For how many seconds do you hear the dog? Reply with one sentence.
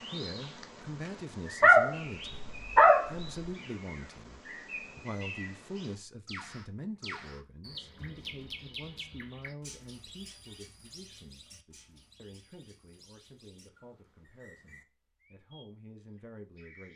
The dog can be heard for 2 seconds in total.